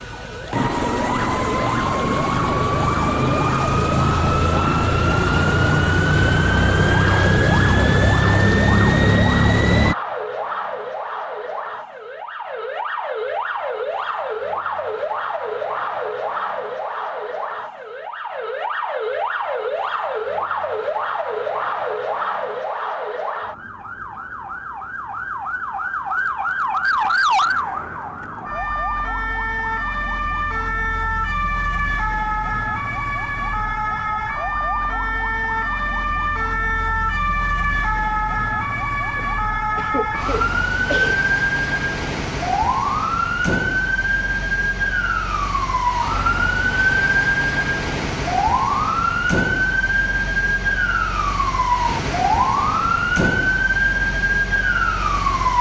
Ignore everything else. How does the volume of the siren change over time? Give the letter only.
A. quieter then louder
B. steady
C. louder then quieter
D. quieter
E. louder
E.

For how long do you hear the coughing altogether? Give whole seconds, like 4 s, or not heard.
2 s.